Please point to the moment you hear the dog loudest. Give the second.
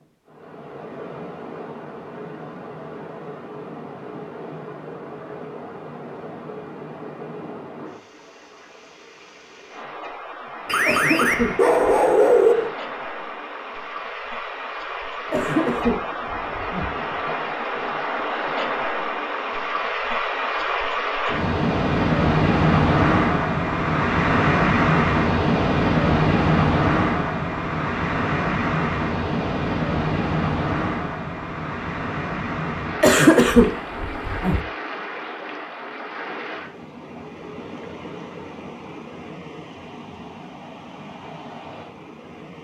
12 s.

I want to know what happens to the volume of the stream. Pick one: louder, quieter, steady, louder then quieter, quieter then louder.
louder then quieter.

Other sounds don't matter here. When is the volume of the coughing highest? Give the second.
33 s.